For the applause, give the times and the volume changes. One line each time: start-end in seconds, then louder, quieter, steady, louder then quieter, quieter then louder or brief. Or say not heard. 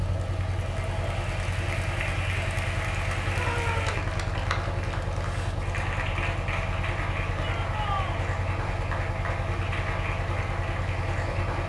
0.0-11.6 steady.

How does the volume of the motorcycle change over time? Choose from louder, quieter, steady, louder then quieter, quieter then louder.
steady.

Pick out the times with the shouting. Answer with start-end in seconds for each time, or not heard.
3.3-4.1, 7.3-8.2.